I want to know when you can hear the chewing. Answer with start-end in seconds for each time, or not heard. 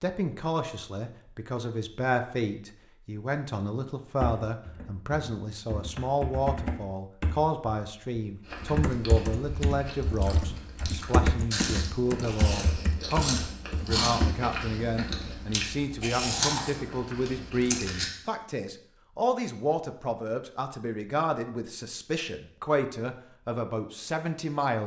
8.4-18.1.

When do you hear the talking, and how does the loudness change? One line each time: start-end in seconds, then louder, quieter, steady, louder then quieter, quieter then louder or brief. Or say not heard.
0.0-24.8 steady.